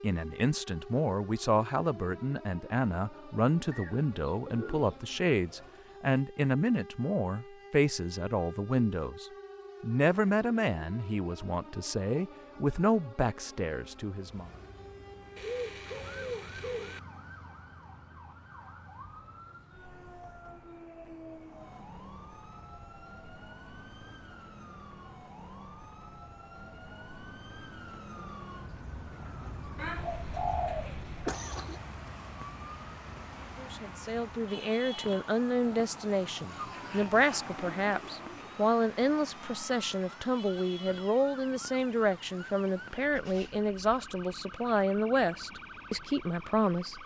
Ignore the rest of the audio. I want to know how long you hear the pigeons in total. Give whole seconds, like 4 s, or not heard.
7 s.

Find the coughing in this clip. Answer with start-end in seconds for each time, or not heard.
31.2-31.8.